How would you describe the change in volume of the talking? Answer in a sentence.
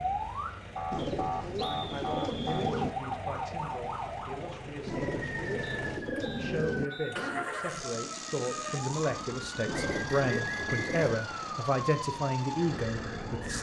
The loudness of the talking goes up.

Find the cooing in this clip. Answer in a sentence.
You can hear the cooing from 0.9 to 3.0 s, from 4.8 to 6.9 s and from 9.7 to 11.2 s.